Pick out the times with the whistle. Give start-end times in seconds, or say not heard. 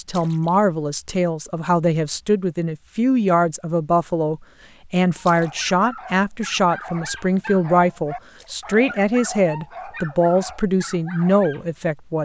not heard.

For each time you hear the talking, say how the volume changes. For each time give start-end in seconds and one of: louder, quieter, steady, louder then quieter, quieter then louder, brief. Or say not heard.
0.0-12.1 steady.